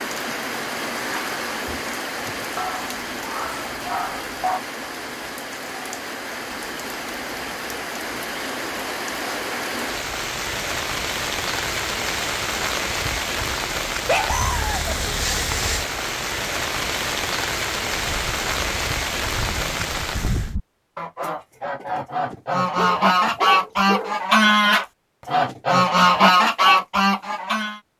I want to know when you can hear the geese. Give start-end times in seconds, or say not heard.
17.9-27.8.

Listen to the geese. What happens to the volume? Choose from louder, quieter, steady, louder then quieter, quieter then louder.
louder.